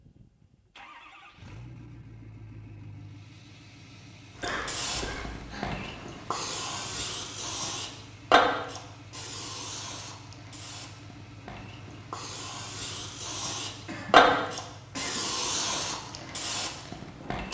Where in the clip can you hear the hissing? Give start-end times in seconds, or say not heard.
4.3-17.4.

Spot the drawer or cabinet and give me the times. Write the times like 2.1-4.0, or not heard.
not heard.